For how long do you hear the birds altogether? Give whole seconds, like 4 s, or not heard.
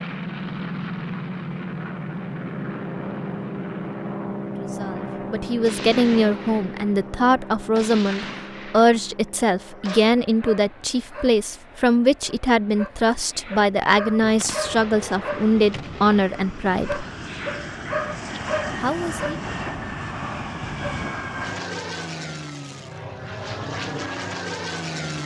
not heard.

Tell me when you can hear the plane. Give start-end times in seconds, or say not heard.
0.0-25.2.